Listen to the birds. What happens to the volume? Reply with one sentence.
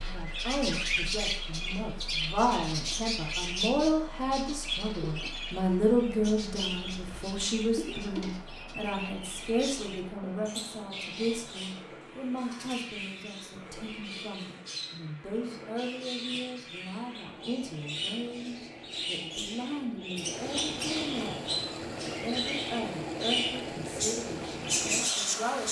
The loudness of the birds goes down, then up.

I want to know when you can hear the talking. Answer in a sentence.
You can hear the talking from 0.0 to 25.6 s.